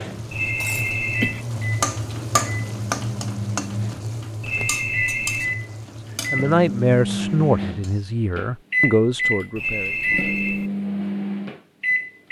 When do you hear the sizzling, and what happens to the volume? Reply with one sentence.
You can hear the sizzling from 0.0 to 8.0 s, getting quieter.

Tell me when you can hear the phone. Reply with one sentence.
You can hear the phone from 0.3 to 1.4 s, from 4.4 to 5.5 s and from 9.6 to 10.7 s.